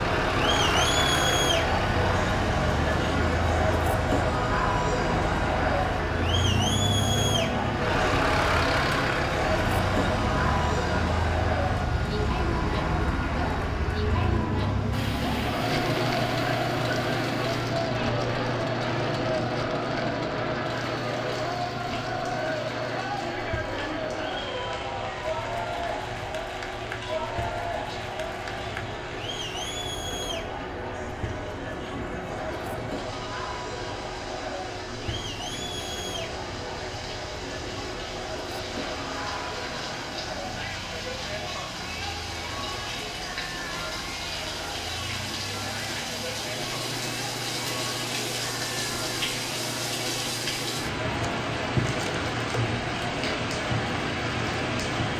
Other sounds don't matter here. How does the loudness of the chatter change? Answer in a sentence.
The volume of the chatter goes down.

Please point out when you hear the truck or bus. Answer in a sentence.
The truck or bus can be heard from 0.0 to 55.1 s.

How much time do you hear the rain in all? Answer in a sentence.
The rain can be heard for 40 seconds in total.